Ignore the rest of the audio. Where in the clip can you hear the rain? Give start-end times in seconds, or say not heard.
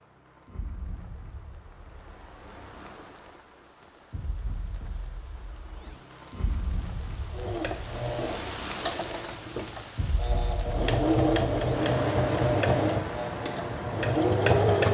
0.0-14.8.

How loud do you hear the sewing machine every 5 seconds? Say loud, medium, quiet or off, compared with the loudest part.
off, medium, loud.